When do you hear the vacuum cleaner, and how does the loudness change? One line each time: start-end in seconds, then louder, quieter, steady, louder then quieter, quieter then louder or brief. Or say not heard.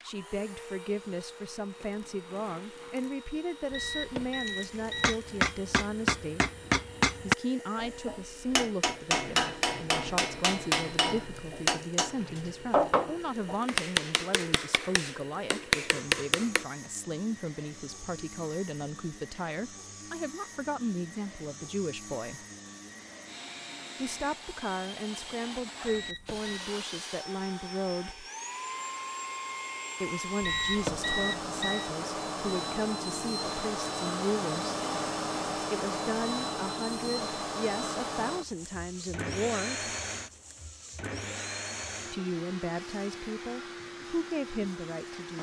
0.0-45.3 louder.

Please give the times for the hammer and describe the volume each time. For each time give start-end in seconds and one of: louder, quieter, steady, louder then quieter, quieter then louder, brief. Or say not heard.
4.8-16.6 steady.